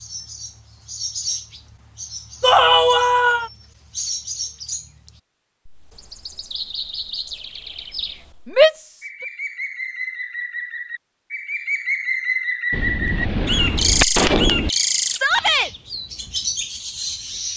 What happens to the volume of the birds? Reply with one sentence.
The volume of the birds goes up.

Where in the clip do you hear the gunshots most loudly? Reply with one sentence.
The volume of the gunshots peaks at 14 seconds.